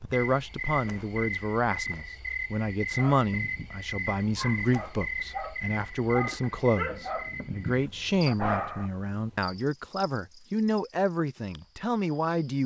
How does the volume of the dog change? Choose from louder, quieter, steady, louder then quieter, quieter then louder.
louder.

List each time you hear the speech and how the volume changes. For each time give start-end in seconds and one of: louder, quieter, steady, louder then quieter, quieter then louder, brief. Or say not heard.
0.0-12.6 steady.